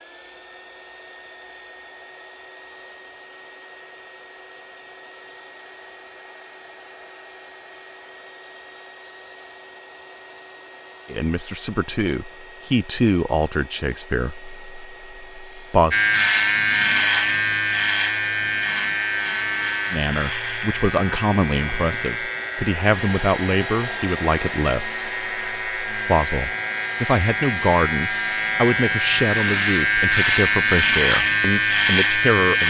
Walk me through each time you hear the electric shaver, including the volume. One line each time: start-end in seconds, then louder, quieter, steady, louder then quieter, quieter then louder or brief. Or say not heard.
15.9-32.6 quieter then louder.